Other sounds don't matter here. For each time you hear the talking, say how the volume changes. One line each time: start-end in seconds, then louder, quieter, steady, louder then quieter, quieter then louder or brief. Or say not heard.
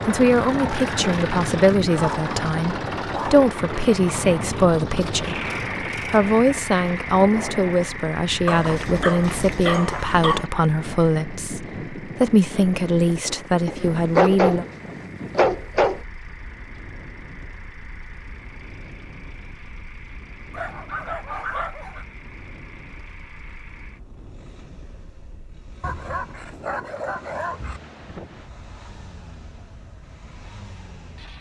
0.1-14.7 steady.